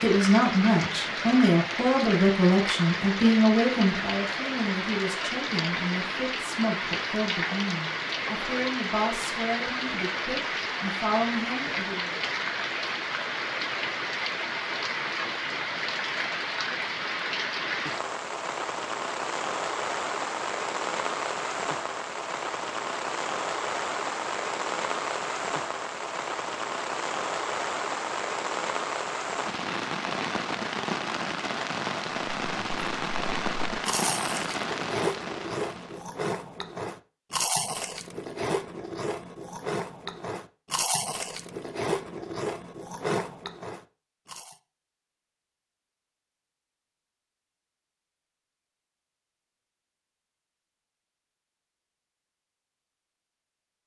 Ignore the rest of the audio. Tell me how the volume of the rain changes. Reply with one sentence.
The loudness of the rain stays about the same.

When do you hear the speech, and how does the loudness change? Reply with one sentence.
You can hear the speech from 0.0 to 12.1 s, getting quieter.